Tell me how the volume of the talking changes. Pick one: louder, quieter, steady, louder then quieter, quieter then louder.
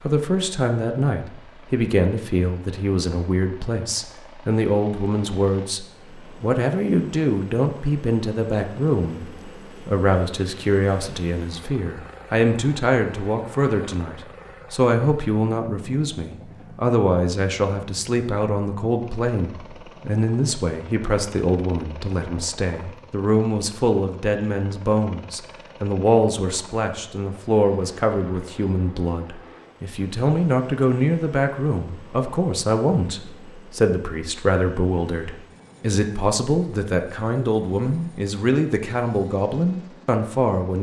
steady.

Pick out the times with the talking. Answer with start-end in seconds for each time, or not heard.
0.0-40.7.